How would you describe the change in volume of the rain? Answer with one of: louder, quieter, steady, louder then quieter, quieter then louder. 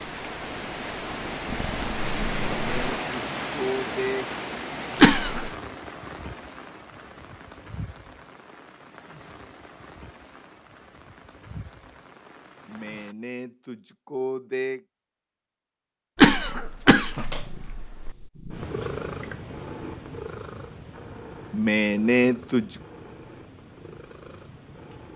quieter.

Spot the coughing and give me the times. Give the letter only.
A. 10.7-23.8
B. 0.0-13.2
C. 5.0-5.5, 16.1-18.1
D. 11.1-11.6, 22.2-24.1
C.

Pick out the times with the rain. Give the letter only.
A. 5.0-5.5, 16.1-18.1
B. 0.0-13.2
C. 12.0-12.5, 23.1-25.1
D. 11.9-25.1
B.